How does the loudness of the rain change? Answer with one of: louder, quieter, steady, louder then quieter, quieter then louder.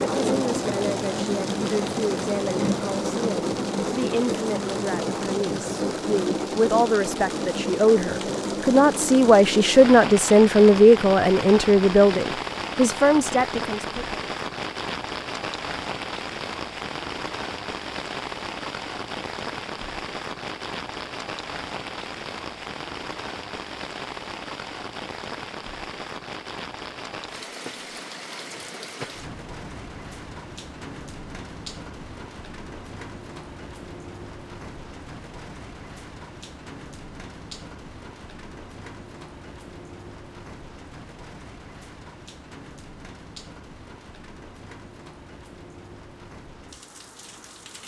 quieter.